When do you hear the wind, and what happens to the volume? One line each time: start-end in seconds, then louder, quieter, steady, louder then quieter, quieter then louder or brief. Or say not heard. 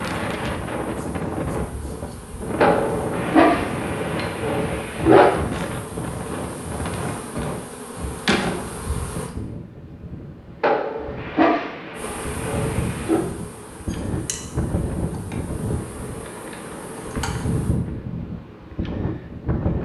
0.0-19.8 quieter then louder.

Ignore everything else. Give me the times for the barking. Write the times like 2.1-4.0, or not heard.
2.6-5.3, 10.6-13.2.